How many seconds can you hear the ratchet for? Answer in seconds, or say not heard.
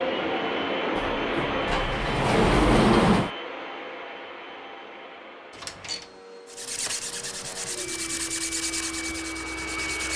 not heard.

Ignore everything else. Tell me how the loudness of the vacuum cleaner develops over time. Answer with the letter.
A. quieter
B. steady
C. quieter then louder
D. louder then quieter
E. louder
C.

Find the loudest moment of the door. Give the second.
3 s.